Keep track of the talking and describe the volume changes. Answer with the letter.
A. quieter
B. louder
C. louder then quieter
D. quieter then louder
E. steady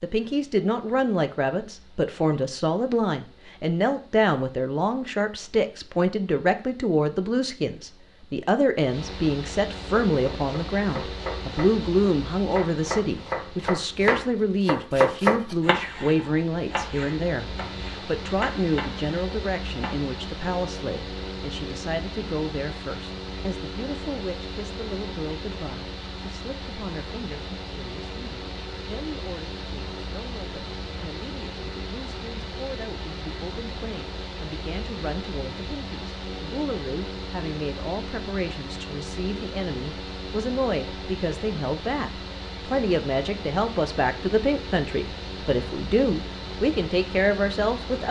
D.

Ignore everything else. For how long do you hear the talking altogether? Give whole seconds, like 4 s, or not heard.
48 s.